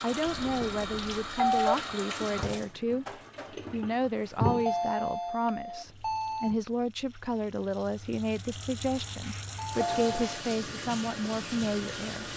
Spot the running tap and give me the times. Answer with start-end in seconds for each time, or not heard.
0.0-12.3.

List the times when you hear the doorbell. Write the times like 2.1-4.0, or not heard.
0.2-1.8, 4.4-6.5, 9.7-10.4.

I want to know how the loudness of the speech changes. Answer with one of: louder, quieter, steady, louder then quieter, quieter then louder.
steady.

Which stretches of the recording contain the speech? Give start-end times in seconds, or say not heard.
0.0-12.3.